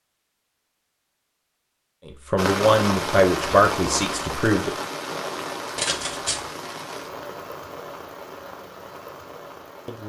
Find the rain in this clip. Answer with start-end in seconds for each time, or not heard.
2.4-10.0.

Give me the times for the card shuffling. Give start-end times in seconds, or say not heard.
5.8-6.5.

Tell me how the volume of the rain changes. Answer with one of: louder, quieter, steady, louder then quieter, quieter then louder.
quieter.